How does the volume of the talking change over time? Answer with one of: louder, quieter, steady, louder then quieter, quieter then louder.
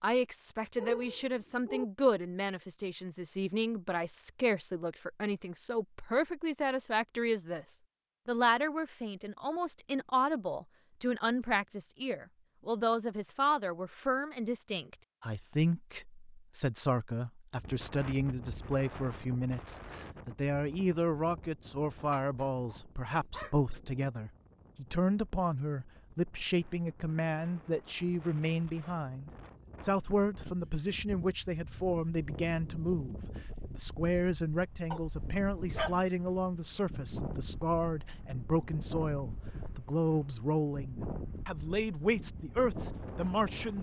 steady.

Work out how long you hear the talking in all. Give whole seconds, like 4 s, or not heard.
44 s.